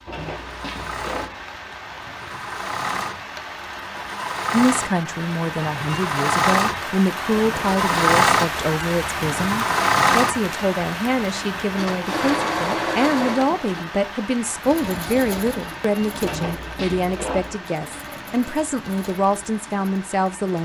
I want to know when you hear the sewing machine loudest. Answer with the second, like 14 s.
8 s.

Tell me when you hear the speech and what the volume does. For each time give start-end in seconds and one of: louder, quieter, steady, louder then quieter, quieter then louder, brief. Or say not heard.
4.5-20.6 steady.